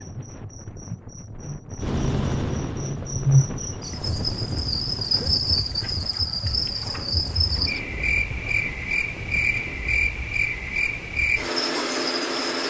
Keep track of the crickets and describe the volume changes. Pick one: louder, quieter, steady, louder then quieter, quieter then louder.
louder.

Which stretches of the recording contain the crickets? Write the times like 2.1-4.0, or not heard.
0.0-12.6.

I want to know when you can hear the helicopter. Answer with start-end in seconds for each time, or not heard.
1.8-5.3.